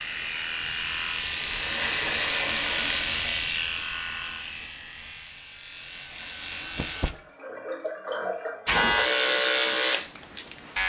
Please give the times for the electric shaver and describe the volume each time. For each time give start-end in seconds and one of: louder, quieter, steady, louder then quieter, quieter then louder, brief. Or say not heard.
0.0-7.2 quieter
8.7-10.8 brief.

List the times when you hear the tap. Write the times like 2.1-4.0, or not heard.
1.4-3.5, 5.9-9.2.